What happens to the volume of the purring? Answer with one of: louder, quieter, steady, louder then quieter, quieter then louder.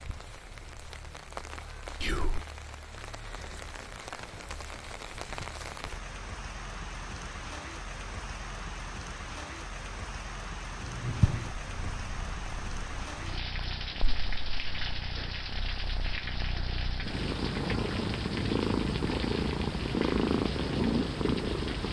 quieter then louder.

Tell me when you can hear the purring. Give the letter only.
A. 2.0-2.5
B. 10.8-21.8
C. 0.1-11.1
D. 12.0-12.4
B.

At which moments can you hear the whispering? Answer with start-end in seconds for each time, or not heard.
2.0-2.5.